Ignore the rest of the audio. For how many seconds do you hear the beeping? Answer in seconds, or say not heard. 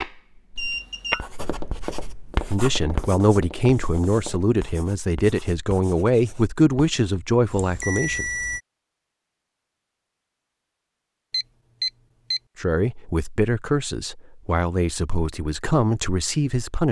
3 s.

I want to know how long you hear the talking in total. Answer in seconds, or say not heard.
10 s.